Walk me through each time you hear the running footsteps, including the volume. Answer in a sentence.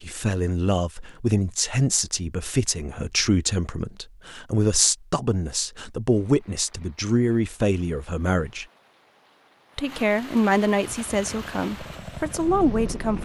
The running footsteps can't be heard in this clip.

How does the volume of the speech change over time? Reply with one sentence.
The loudness of the speech stays about the same.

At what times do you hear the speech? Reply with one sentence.
You can hear the speech from 0.0 to 8.7 s and from 9.8 to 13.1 s.